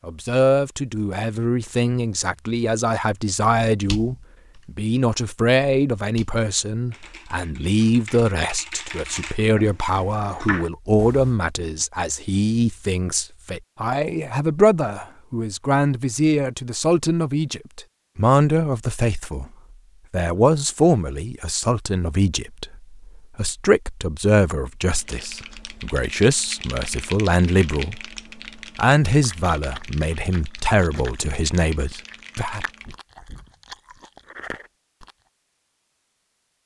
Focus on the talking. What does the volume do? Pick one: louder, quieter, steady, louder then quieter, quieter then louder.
steady.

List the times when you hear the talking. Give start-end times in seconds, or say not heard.
0.1-19.4, 20.1-28.0, 28.8-32.6.